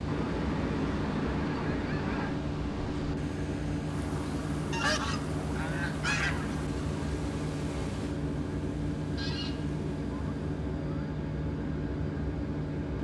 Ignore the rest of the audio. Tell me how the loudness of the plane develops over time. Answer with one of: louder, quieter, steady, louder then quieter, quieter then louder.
steady.